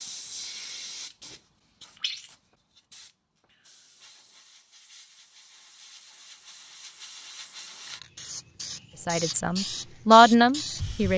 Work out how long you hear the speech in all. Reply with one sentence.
The speech can be heard for 2 seconds in total.